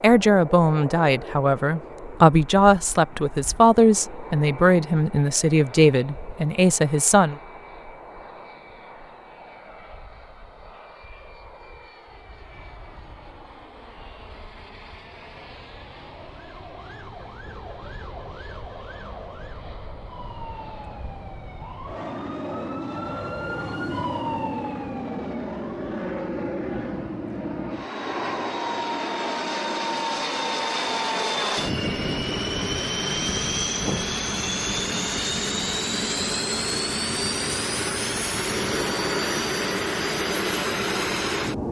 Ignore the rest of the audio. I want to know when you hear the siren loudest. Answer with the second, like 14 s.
24 s.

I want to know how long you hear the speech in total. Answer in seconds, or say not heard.
7 s.